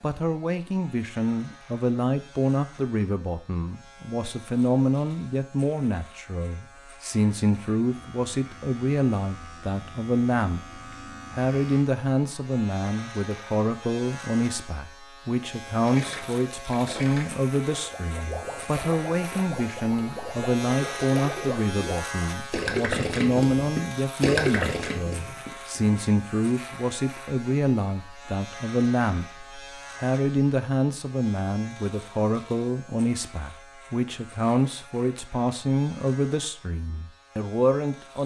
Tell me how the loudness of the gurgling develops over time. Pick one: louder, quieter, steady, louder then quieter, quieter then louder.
louder.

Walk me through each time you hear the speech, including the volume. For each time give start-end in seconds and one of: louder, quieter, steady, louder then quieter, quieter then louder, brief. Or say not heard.
0.0-38.2 steady.